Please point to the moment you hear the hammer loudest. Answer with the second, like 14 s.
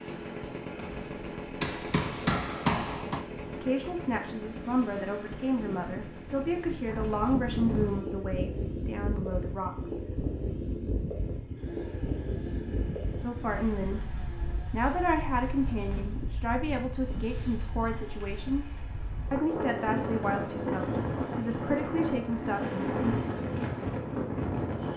3 s.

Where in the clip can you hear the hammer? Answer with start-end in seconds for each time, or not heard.
0.8-3.2.